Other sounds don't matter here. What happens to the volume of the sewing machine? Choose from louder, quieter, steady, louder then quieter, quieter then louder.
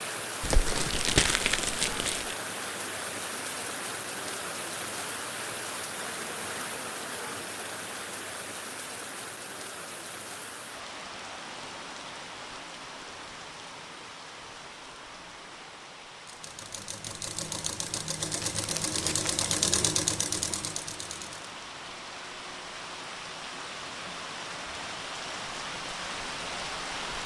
louder then quieter.